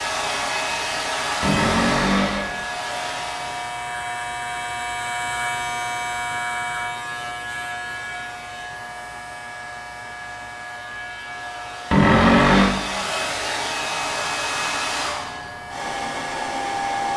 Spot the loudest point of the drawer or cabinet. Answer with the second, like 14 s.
12 s.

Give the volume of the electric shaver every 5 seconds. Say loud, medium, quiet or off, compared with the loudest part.
loud, loud, medium, medium.